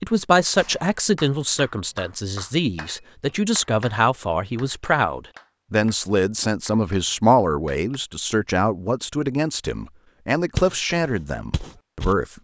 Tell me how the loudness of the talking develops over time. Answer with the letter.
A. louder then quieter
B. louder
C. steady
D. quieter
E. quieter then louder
C.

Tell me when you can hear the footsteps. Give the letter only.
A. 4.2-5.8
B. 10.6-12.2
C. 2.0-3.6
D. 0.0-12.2
B.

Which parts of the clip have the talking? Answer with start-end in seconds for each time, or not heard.
0.0-12.2.